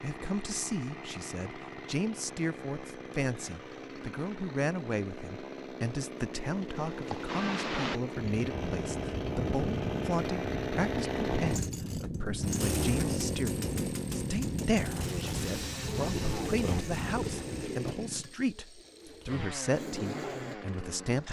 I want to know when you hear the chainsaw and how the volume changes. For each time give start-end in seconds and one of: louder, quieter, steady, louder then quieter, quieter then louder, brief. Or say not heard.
0.0-21.2 louder then quieter.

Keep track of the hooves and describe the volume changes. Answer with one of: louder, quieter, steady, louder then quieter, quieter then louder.
steady.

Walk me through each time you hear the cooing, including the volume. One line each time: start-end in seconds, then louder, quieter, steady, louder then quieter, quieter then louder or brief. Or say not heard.
15.4-20.6 quieter then louder.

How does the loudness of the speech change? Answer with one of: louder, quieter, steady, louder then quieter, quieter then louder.
steady.